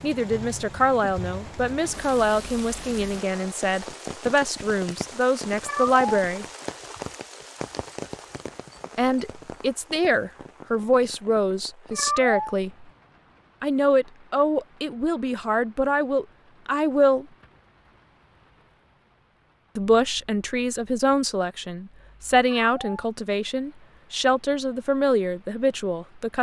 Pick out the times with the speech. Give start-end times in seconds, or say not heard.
0.0-6.5, 8.9-12.8, 13.6-17.2, 19.8-26.3.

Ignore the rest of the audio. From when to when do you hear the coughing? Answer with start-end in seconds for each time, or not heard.
not heard.